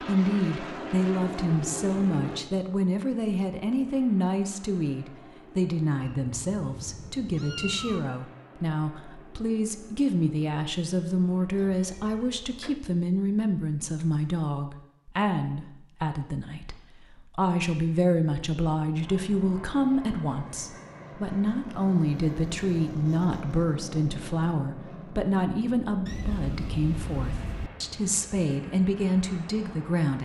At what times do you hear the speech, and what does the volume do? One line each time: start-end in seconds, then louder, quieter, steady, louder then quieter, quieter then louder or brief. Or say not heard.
0.1-30.2 steady.